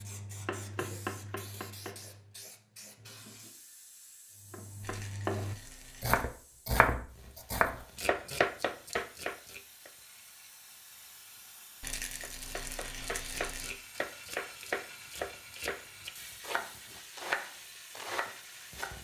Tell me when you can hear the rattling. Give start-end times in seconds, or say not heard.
4.8-6.3, 11.8-13.8.